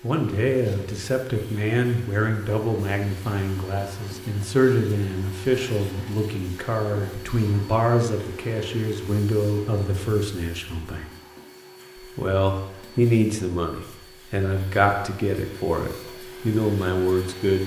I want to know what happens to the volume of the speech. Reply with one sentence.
The loudness of the speech stays about the same.